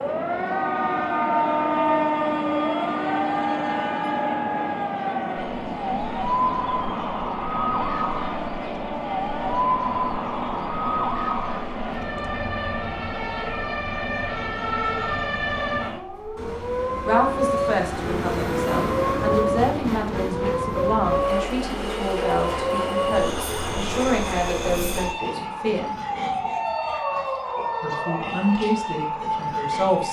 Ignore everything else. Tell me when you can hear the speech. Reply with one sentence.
You can hear the speech from 17.1 to 25.9 s and from 27.8 to 30.0 s.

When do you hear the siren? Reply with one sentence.
The siren can be heard from 0.0 to 29.8 s.